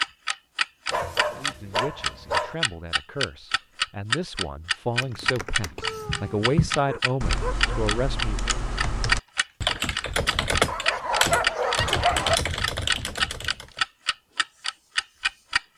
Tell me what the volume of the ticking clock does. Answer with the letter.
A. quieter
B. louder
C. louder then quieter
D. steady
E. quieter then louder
D.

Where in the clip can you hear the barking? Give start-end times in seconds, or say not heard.
0.9-2.5, 5.8-7.8, 10.7-12.4.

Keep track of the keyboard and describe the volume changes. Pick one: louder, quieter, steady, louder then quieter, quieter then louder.
louder.